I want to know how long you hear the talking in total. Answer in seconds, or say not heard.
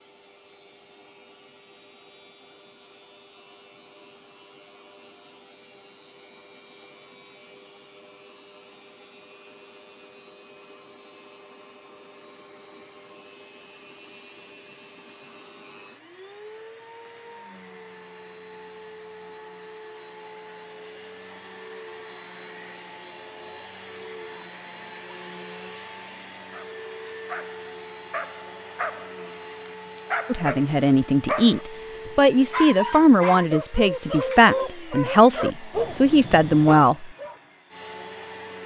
7 s.